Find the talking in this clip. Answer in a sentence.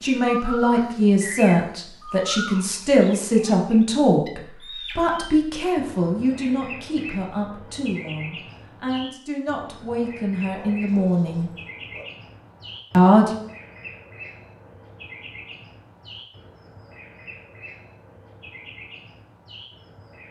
The talking can be heard from 0.0 to 11.5 s and from 12.9 to 13.3 s.